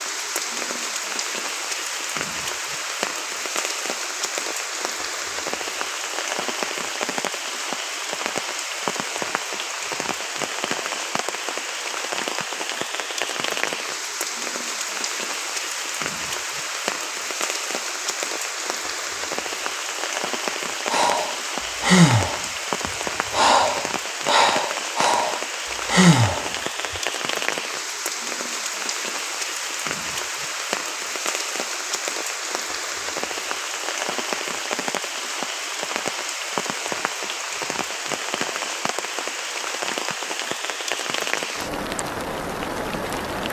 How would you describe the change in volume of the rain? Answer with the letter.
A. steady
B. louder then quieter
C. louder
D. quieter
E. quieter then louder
A.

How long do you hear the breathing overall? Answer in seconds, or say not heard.
6 s.